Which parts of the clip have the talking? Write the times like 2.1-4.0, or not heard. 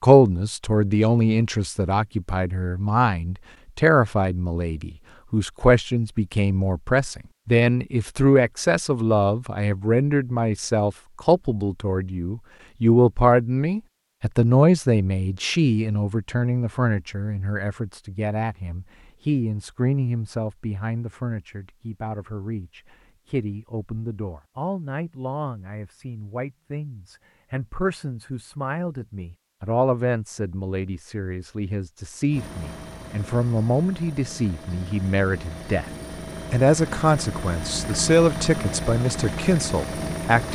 0.0-35.9, 36.5-40.4.